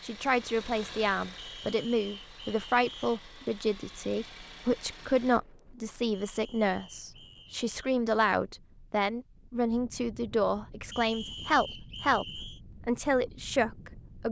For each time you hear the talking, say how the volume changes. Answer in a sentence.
You can hear the talking from 0.0 to 14.2 s, at a steady volume.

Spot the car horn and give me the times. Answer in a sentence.
You can't hear the car horn here.